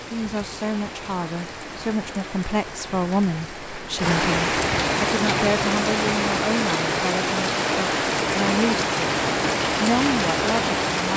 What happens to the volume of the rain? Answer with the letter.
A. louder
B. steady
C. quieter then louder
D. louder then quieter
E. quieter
A.